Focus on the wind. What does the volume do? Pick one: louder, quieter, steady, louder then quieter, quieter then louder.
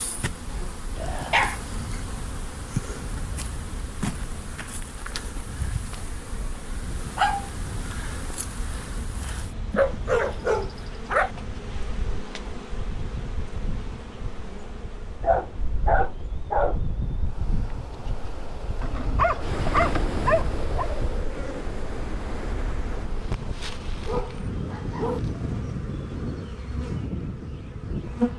louder.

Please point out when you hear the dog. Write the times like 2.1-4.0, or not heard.
0.9-1.6, 6.7-7.5, 9.8-11.3, 15.2-16.8, 18.8-20.9, 24.0-25.2.